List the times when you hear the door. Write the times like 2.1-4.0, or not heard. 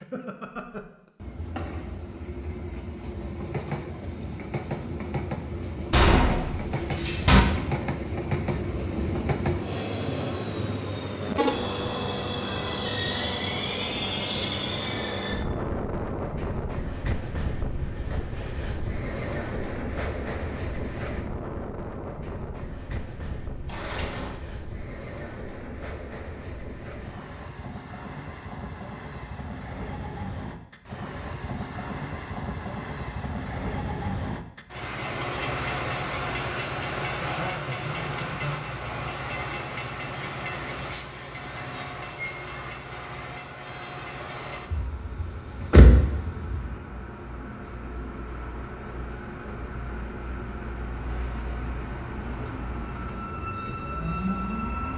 5.9-7.4, 23.7-24.4, 44.7-46.6.